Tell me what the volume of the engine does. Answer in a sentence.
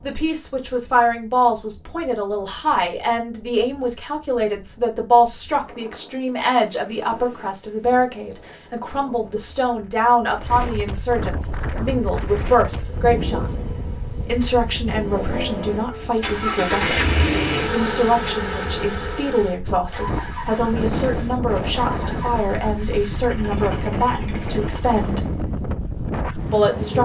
The volume of the engine goes up, then down.